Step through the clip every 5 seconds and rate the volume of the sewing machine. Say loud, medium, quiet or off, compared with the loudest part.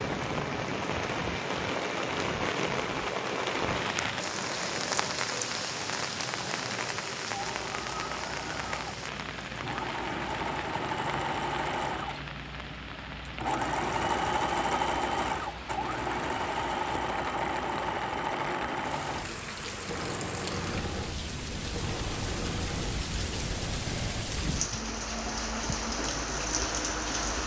medium, medium, loud, loud, medium, medium.